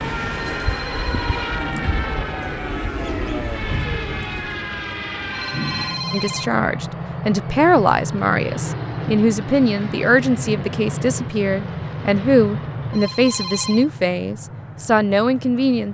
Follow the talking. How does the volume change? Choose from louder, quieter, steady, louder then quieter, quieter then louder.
steady.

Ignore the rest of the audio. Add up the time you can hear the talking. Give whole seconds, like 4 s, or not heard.
10 s.